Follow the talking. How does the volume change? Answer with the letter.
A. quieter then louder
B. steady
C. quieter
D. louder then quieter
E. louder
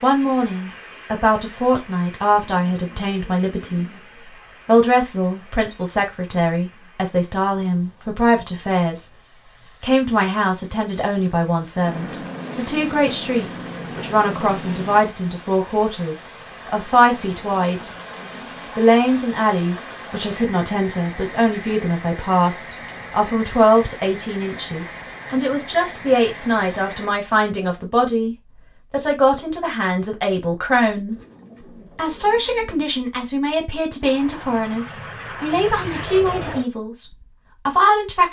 B.